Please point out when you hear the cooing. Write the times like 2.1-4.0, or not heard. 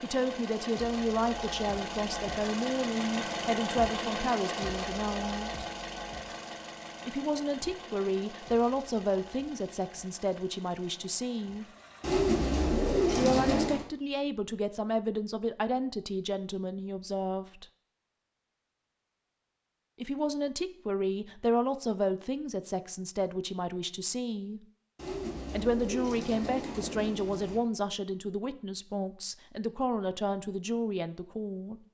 12.0-13.8, 24.9-27.6.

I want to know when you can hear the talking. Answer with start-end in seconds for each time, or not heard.
0.0-5.7, 7.0-11.7, 13.2-17.6, 20.0-24.6, 25.5-31.8.